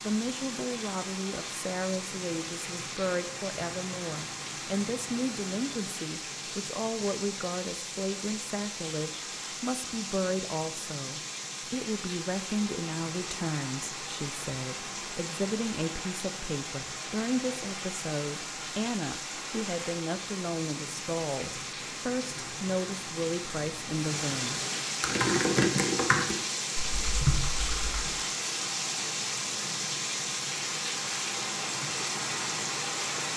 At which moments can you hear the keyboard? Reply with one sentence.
You can hear the keyboard from 25.0 to 28.1 s.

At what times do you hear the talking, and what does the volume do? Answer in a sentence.
The talking can be heard from 0.0 to 24.6 s, at a steady volume.